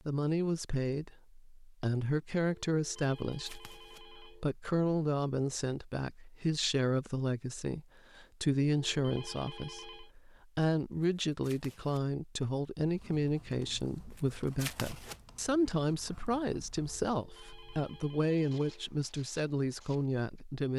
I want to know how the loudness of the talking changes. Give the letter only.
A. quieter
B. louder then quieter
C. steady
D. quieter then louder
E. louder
C.